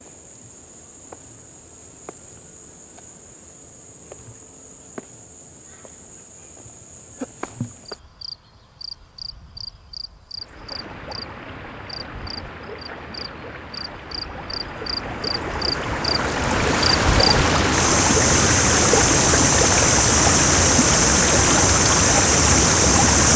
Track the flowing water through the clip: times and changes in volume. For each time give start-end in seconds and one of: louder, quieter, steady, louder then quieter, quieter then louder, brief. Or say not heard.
10.3-23.3 louder.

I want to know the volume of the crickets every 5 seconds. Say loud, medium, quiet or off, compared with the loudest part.
quiet, quiet, quiet, loud, loud.